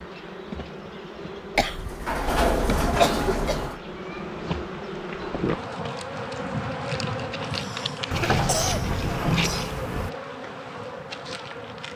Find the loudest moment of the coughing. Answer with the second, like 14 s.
3 s.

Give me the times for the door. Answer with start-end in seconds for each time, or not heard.
1.6-3.8, 8.1-10.1.